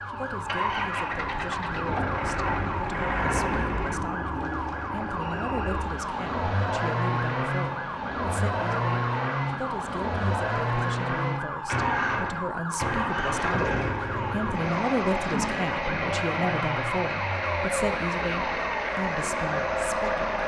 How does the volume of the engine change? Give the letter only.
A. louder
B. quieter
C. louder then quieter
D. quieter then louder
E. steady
E.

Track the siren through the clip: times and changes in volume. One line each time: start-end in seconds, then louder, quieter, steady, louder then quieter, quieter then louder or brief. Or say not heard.
0.0-20.4 steady.